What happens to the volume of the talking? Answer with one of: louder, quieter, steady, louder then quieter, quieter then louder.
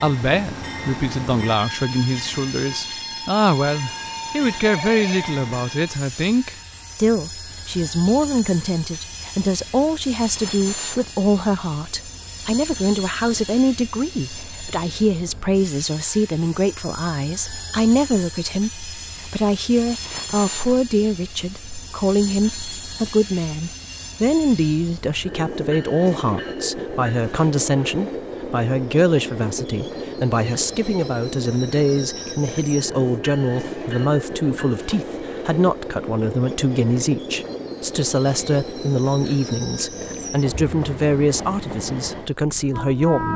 steady.